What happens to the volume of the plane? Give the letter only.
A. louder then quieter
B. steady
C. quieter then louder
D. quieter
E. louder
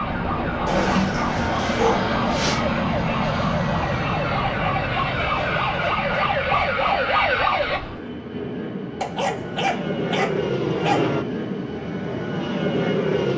C.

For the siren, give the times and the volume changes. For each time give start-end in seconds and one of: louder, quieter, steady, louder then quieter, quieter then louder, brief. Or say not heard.
0.0-7.8 louder.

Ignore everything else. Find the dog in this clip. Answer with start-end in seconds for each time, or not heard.
0.7-2.6, 5.2-7.1, 9.0-11.1.